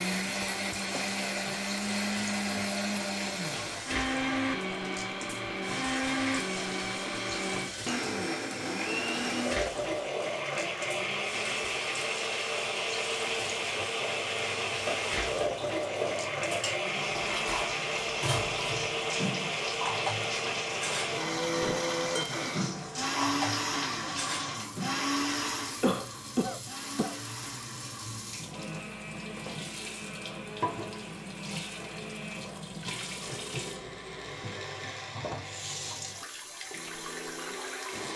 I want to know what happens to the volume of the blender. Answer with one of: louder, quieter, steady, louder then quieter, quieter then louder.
quieter.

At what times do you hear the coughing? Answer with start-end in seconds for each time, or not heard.
0.9-1.6, 25.8-27.1.